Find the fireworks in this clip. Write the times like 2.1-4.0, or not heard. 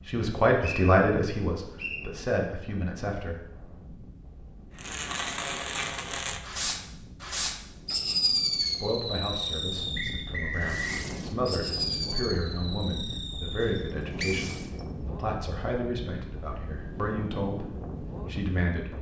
4.8-14.8.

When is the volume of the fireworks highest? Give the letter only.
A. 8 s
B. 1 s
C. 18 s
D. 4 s
A.